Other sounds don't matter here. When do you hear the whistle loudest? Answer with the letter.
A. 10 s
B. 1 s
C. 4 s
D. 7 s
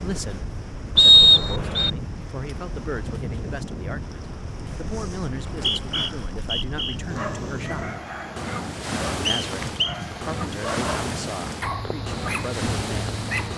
B.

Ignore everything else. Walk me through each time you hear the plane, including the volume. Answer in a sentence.
The plane can't be heard in this clip.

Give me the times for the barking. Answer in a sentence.
The barking can be heard from 7.0 to 13.5 s.